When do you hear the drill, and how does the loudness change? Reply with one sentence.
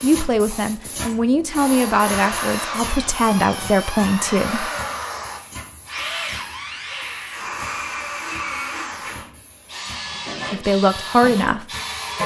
You can hear the drill from 0.0 to 12.2 s, at a steady volume.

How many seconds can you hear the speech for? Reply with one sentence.
You can hear the speech for 6 seconds altogether.